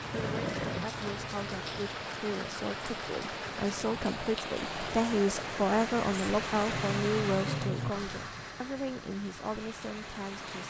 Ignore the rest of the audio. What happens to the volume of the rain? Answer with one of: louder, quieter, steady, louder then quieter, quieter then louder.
quieter.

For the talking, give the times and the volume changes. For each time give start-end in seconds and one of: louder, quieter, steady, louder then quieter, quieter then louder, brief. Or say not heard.
0.1-10.6 louder then quieter.